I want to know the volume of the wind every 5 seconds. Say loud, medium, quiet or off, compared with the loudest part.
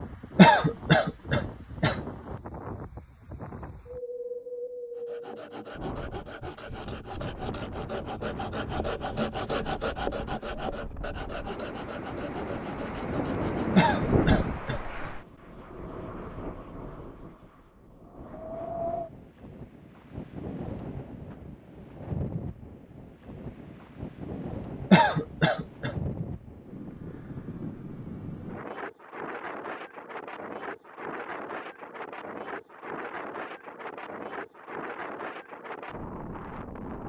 medium, medium, loud, medium, medium, medium, medium, medium.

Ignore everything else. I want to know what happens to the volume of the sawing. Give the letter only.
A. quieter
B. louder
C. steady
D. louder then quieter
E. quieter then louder
D.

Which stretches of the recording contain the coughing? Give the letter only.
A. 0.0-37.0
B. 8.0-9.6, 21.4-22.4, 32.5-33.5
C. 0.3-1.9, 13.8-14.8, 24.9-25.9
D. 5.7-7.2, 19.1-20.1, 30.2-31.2
C.